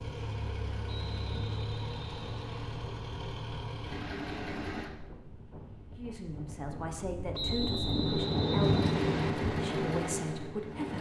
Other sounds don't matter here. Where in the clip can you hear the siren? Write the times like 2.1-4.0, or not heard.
not heard.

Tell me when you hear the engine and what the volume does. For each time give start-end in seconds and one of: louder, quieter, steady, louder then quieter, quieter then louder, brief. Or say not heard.
0.0-4.9 steady
8.6-10.9 brief.